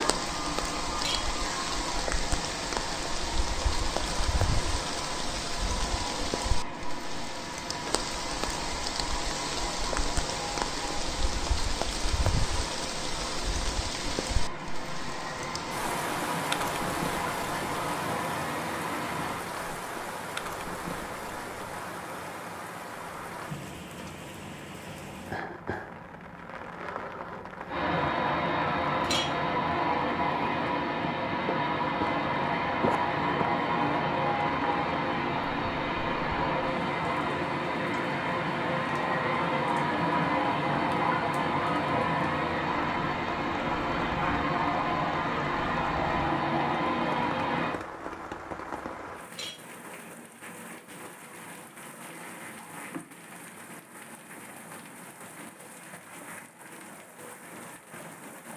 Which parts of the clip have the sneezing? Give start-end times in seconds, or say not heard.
not heard.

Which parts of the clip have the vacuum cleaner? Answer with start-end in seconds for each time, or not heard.
0.0-19.4, 27.6-47.8.